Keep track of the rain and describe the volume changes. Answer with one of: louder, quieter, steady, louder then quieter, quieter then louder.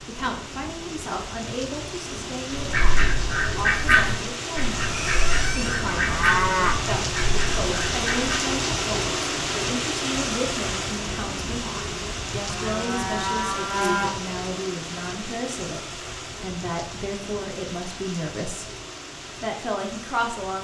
louder then quieter.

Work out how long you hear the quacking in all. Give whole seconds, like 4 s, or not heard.
6 s.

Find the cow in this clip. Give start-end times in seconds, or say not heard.
4.9-6.8, 12.4-14.1.